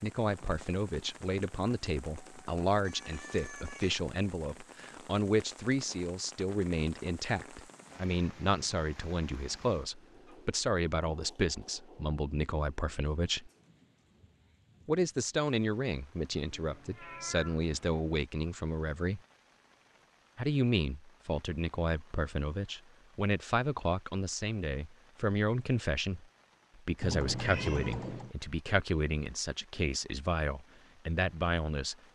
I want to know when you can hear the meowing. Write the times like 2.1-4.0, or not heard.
2.8-4.0, 16.5-18.0, 27.0-28.3.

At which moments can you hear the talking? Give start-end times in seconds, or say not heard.
0.0-13.5, 14.8-19.2, 20.4-31.9.